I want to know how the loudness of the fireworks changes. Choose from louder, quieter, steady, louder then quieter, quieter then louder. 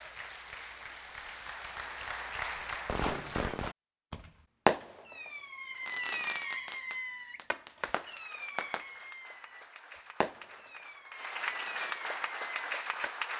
quieter.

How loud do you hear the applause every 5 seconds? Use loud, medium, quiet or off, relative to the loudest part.
loud, quiet, loud.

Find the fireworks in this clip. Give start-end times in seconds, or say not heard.
2.5-13.2.